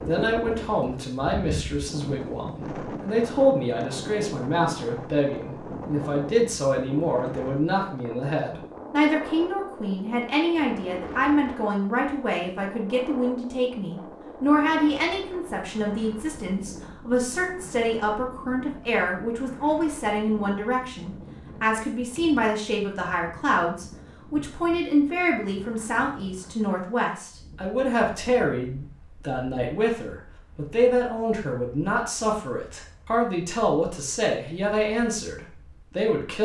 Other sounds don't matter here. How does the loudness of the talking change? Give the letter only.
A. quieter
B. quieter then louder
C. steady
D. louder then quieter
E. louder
C.